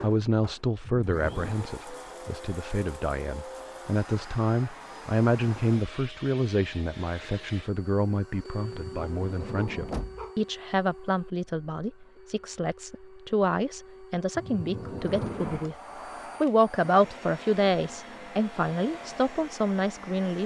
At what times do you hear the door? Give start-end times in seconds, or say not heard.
0.8-1.6, 8.7-10.3, 14.3-15.7.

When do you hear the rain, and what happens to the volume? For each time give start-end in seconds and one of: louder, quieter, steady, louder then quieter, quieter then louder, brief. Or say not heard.
not heard.